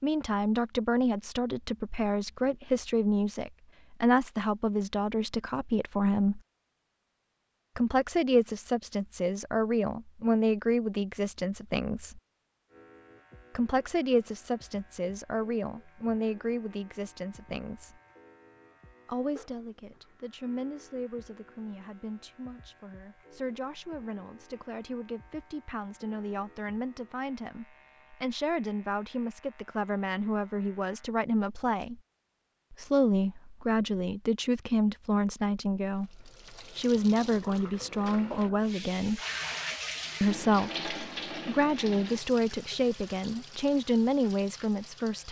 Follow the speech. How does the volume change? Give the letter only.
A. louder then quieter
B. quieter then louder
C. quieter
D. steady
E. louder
B.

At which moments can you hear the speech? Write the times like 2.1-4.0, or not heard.
0.0-6.4, 7.8-12.2, 13.6-18.0, 19.1-32.0, 32.7-39.2, 40.2-45.2.